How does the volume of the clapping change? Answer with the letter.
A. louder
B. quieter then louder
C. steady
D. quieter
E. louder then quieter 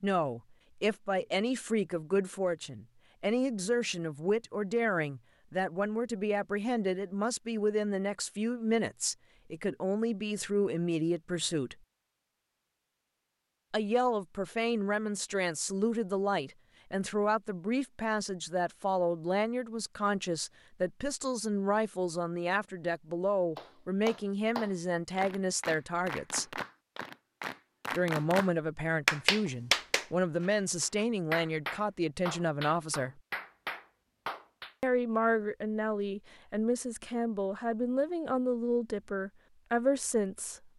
E.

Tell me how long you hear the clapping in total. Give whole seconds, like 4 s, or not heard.
11 s.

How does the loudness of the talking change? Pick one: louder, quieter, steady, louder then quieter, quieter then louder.
steady.